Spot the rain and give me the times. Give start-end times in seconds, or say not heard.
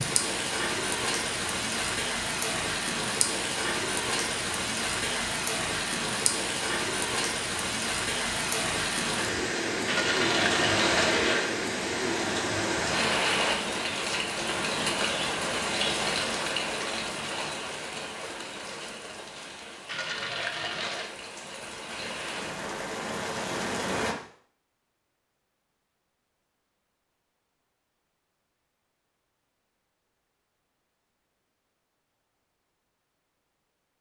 0.0-24.1.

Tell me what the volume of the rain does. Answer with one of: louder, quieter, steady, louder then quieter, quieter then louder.
quieter.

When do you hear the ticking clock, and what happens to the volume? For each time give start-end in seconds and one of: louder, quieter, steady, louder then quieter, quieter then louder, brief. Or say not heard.
not heard.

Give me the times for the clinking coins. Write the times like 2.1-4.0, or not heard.
9.8-11.5, 19.9-21.1.